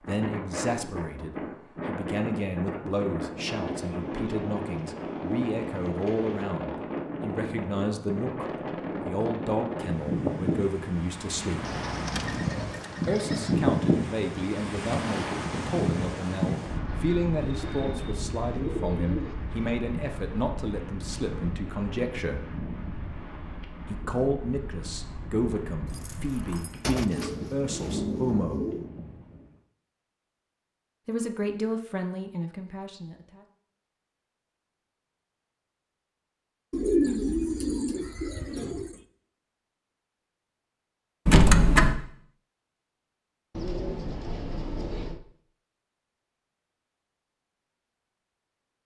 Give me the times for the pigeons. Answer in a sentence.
You can hear the pigeons from 3.6 to 6.5 s, from 11.6 to 13.6 s, from 17.4 to 19.4 s, from 26.8 to 28.9 s, from 36.7 to 39.0 s and from 43.5 to 45.2 s.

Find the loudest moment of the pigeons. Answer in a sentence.
The volume of the pigeons peaks at 37 seconds.